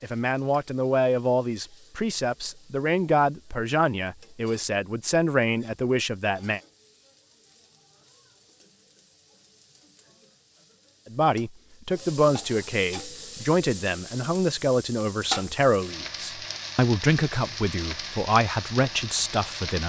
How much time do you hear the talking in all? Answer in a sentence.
The talking can be heard for 15 seconds in total.